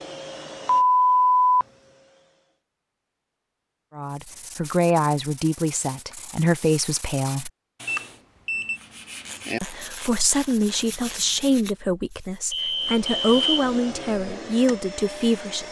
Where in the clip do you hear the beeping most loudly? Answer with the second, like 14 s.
1 s.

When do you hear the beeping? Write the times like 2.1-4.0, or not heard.
0.7-1.6, 7.8-8.8, 12.5-13.7.